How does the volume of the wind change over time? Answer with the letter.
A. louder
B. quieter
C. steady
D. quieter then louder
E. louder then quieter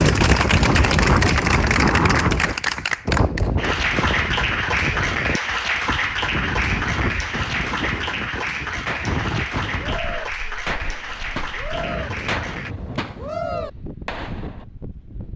B.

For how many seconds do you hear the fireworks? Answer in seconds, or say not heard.
8 s.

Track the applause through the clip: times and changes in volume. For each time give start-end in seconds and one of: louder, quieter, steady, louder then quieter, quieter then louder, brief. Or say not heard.
0.0-12.8 quieter.